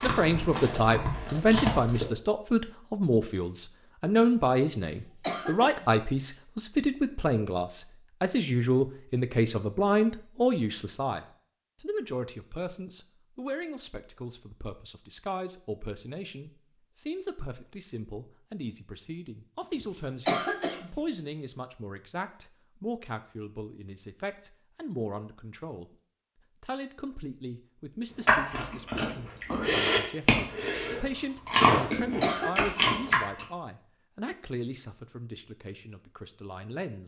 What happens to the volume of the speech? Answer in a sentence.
The volume of the speech goes down.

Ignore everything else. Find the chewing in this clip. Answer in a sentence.
The chewing can be heard from 0.0 to 2.0 s and from 28.2 to 33.5 s.